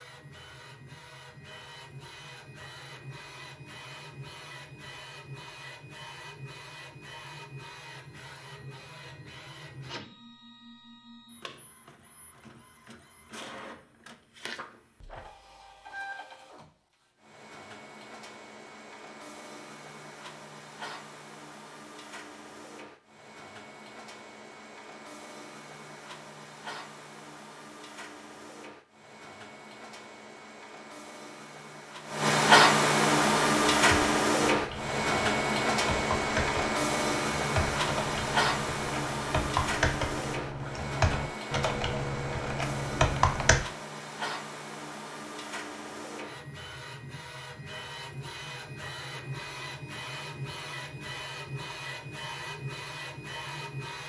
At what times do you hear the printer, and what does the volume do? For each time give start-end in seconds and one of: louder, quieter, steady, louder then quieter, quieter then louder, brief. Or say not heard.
0.0-54.0 louder then quieter.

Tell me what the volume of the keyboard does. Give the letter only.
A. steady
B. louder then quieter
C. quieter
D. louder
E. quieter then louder
D.